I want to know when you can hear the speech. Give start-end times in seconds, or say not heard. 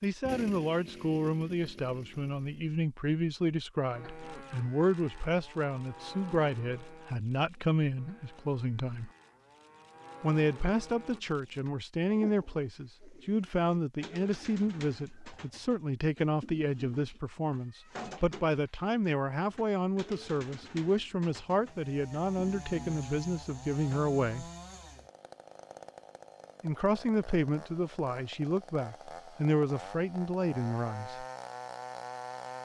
0.0-9.1, 10.2-24.5, 26.6-31.2.